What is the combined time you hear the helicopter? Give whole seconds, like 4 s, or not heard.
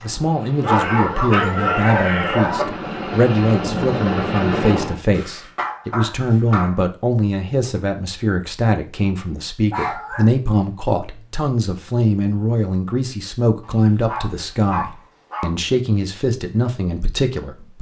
5 s.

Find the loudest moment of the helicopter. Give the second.
4 s.